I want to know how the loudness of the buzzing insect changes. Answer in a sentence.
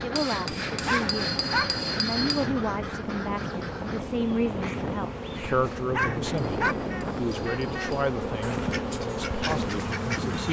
The loudness of the buzzing insect goes up.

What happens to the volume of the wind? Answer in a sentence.
The loudness of the wind stays about the same.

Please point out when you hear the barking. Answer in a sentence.
You can hear the barking from 0.8 to 1.6 s and from 5.9 to 6.8 s.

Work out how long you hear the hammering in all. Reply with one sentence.
The hammering can be heard for 4 seconds in total.